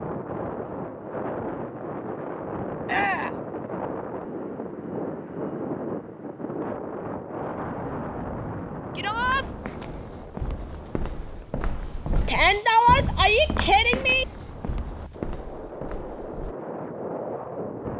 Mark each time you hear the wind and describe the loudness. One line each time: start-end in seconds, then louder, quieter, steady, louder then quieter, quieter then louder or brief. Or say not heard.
0.0-17.9 quieter then louder.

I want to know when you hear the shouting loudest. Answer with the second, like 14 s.
13 s.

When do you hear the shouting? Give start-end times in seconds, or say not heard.
2.9-3.4, 8.9-9.4, 12.2-14.2.